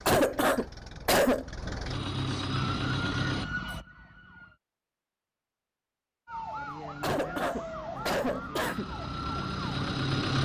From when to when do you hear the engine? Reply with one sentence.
You can hear the engine from 0.0 to 3.5 s and from 8.6 to 10.4 s.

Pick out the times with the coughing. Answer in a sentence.
You can hear the coughing from 0.1 to 1.4 s and from 7.0 to 8.9 s.